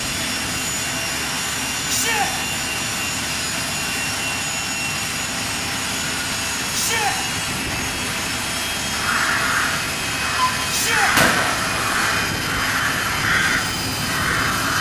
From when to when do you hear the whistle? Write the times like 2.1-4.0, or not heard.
not heard.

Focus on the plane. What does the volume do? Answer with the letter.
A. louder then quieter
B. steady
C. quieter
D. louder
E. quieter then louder
B.